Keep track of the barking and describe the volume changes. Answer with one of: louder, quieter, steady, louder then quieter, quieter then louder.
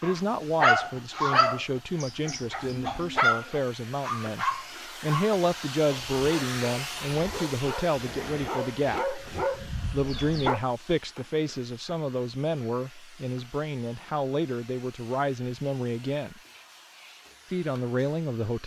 quieter then louder.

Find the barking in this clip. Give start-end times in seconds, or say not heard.
0.0-10.6.